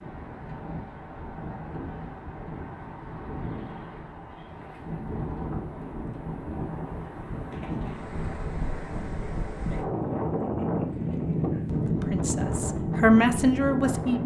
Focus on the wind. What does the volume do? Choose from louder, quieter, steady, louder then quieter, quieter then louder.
louder.